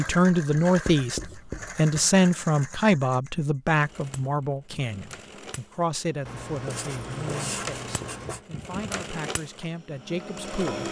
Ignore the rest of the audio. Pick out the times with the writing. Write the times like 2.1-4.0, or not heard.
0.7-1.8, 6.2-8.4.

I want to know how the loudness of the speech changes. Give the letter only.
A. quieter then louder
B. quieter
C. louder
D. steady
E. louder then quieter
B.